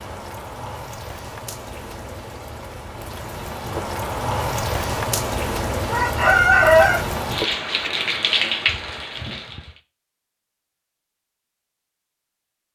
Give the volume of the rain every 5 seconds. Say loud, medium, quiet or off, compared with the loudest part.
medium, loud, off.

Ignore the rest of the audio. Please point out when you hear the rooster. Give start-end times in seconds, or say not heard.
5.9-7.9.